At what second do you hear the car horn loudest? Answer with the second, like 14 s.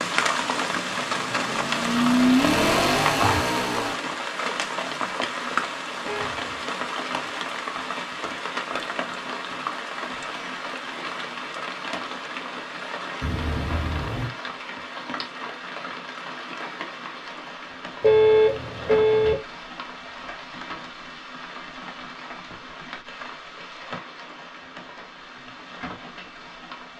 18 s.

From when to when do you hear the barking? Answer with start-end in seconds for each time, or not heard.
not heard.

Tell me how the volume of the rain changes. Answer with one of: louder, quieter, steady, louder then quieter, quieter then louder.
quieter.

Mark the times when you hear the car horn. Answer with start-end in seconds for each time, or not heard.
6.0-6.5, 13.2-14.3, 18.0-19.4.